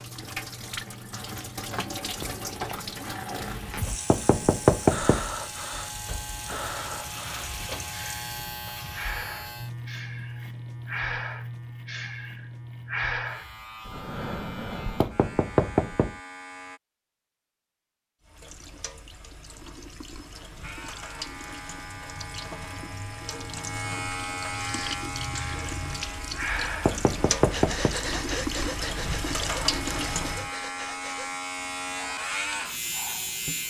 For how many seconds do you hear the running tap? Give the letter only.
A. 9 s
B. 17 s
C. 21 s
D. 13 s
C.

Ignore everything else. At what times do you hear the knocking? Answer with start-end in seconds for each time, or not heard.
4.1-5.2, 15.0-16.1, 26.9-27.9.